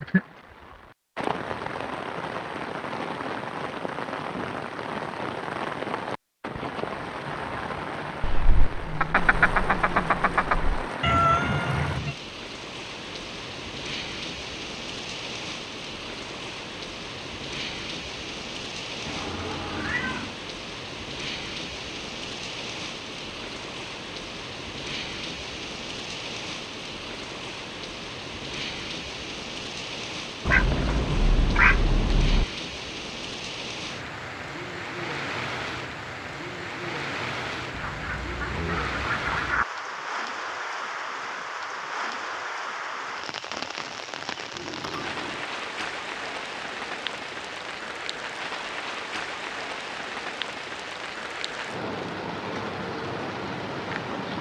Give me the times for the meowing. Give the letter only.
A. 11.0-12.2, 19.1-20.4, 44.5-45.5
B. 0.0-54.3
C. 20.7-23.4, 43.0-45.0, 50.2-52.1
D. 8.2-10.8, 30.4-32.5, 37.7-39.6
A.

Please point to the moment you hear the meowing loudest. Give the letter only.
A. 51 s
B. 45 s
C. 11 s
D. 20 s
C.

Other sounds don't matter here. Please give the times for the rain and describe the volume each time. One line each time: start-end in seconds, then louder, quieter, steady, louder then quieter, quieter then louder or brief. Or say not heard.
0.0-54.3 steady.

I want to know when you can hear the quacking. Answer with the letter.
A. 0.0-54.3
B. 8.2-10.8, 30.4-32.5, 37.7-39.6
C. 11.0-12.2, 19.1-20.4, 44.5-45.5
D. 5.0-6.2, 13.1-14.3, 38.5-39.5
B.